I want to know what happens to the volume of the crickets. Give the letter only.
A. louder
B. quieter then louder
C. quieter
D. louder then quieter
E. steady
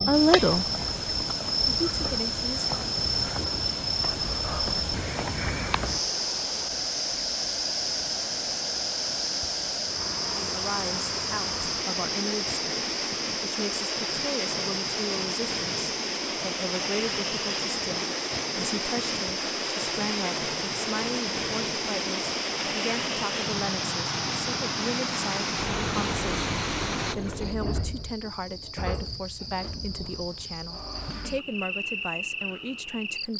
C.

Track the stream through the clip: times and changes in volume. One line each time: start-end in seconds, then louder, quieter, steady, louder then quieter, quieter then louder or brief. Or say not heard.
0.0-27.1 louder.